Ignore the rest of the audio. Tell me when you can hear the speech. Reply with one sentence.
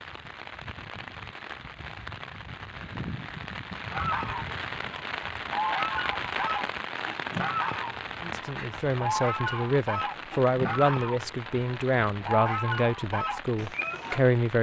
The speech can be heard from 8.2 to 14.5 s.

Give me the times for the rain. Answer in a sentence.
You can hear the rain from 0.0 to 14.5 s.